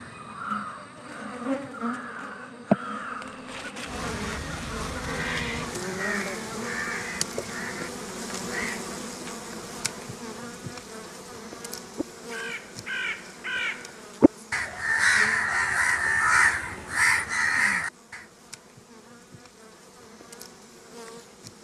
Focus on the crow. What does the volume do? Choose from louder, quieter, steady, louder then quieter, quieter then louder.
louder.